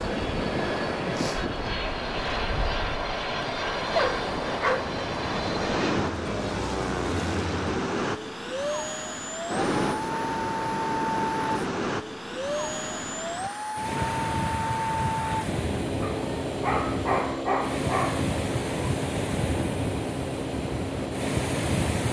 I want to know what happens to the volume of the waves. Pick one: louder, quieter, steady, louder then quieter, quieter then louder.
steady.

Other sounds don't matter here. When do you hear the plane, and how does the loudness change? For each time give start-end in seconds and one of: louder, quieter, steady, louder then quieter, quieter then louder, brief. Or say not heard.
0.0-22.0 steady.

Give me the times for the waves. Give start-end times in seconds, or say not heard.
0.0-22.0.